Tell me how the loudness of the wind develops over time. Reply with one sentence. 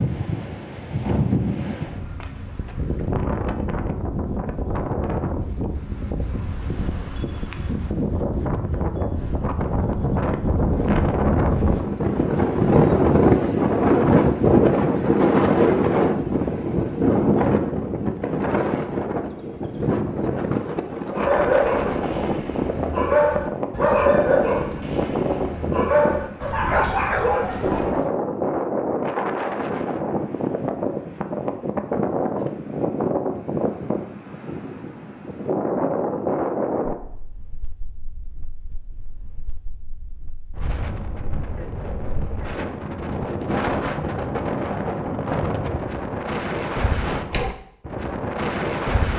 The loudness of the wind goes up, then down.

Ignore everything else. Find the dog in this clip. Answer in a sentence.
You can hear the dog from 21.1 to 28.1 s.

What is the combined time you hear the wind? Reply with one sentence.
The wind can be heard for 49 seconds in total.